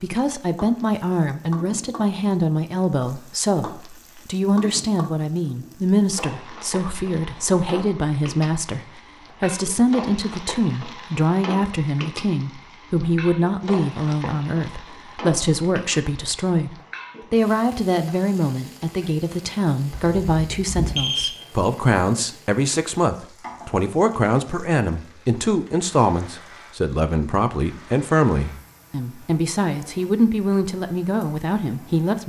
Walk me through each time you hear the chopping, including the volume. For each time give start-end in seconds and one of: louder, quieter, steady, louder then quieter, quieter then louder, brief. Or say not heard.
not heard.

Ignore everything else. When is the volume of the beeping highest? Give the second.
21 s.